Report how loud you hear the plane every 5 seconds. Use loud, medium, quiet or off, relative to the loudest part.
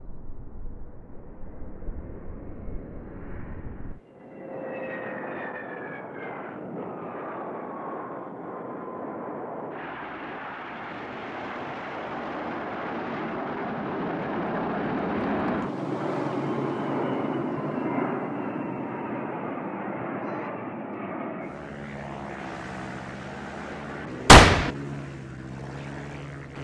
quiet, medium, loud, loud, medium, medium.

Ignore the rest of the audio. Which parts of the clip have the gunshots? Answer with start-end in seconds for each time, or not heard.
24.2-24.7.